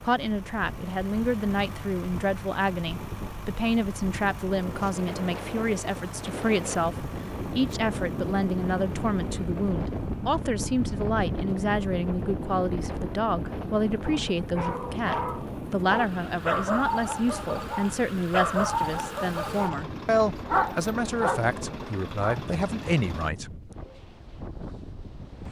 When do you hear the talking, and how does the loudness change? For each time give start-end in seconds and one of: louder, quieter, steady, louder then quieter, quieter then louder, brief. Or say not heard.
0.0-23.7 steady.